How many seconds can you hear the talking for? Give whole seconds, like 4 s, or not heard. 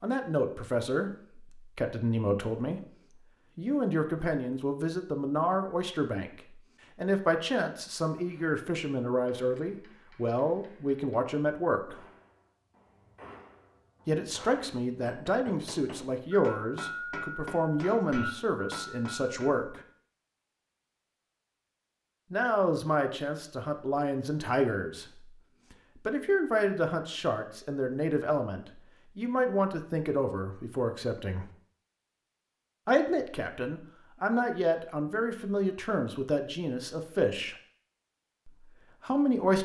32 s.